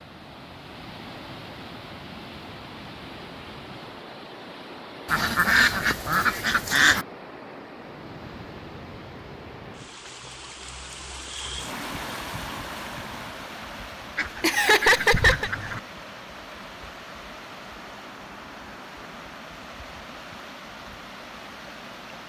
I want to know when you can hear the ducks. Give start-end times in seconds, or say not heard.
5.0-7.0, 14.2-15.8.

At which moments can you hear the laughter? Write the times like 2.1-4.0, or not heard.
14.4-15.5.